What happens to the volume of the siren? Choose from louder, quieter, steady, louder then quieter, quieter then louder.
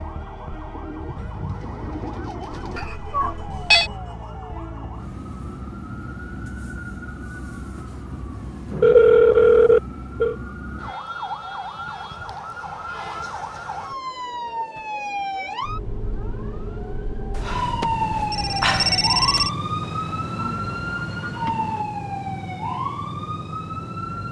louder.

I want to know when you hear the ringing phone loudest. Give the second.
9 s.